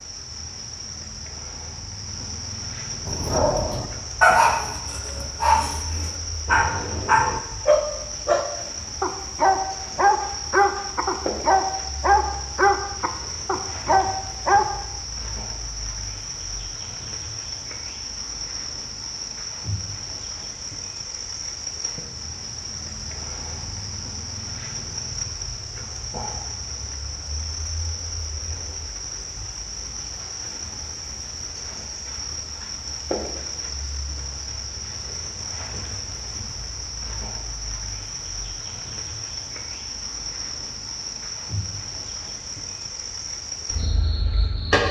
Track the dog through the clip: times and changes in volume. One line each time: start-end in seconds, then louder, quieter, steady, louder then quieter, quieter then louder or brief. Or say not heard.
3.0-14.7 steady.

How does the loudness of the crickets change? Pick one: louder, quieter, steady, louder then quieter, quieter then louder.
steady.